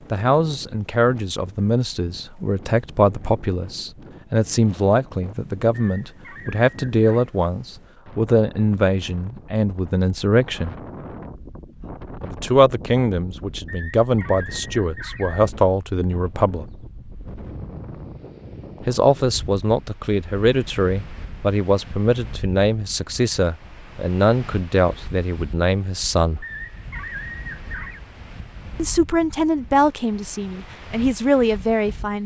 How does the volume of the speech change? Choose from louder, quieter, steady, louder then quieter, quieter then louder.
steady.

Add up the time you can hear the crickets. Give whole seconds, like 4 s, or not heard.
not heard.